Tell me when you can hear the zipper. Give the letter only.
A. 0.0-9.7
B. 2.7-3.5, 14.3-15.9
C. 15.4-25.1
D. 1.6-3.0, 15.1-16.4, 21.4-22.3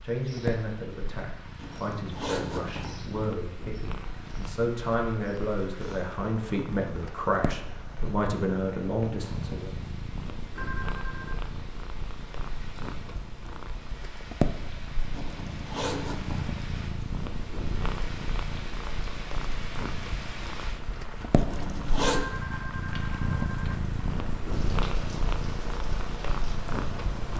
D.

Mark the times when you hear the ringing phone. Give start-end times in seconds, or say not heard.
10.6-11.4, 22.1-23.8.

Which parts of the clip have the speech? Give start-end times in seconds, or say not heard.
0.0-9.7.